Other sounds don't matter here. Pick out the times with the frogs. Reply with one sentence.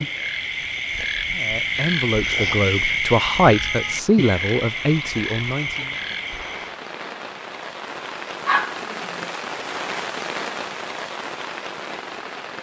The frogs can be heard from 0.0 to 6.8 s.